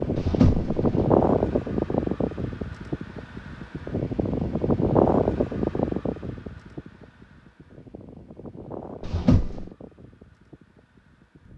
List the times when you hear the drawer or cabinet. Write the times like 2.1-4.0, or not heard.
0.1-1.0, 9.0-9.7.